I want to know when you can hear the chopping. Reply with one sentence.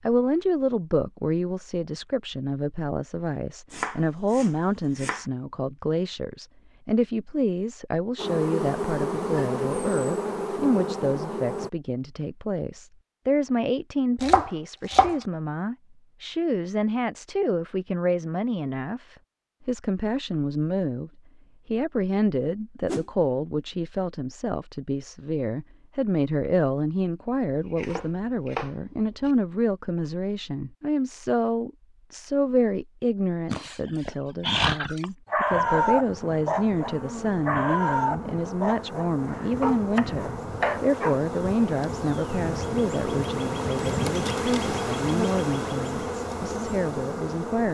You can hear the chopping from 3.7 to 5.2 s, from 14.2 to 15.2 s, from 27.5 to 29.3 s and from 39.2 to 40.8 s.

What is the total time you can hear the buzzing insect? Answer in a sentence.
You can hear the buzzing insect for 16 seconds altogether.